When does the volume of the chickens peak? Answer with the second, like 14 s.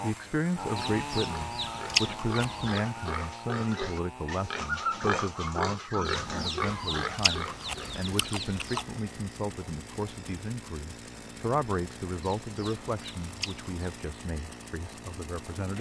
2 s.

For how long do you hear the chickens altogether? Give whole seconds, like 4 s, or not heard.
6 s.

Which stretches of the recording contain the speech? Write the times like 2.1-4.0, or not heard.
0.0-15.7.